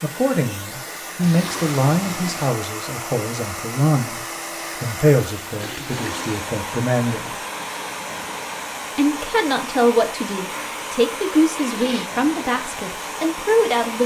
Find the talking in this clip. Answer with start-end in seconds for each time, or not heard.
0.0-7.4, 8.9-14.0.